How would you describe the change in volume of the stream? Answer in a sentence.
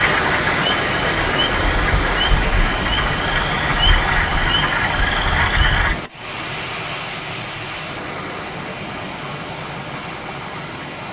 The volume of the stream goes down.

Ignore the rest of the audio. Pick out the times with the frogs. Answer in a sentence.
The frogs can be heard from 0.0 to 6.0 s.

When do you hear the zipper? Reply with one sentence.
The zipper can't be heard in this clip.